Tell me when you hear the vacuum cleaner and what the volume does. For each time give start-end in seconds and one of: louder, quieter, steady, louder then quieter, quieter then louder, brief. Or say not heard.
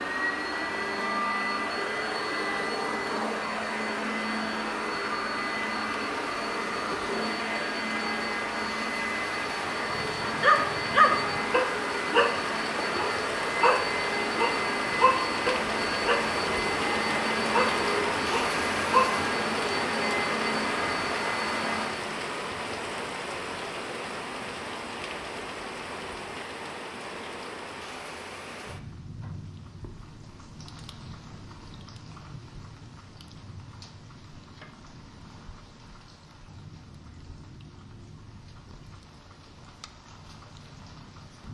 0.0-22.1 steady.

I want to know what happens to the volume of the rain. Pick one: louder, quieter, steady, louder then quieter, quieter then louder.
louder then quieter.